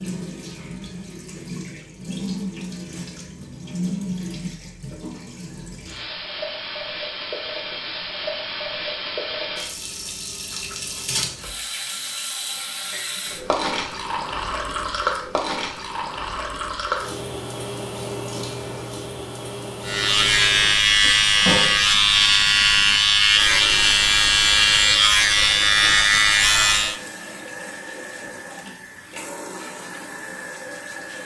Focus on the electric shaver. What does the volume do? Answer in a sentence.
The volume of the electric shaver stays about the same.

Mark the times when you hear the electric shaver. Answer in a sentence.
The electric shaver can be heard from 19.9 to 27.0 s.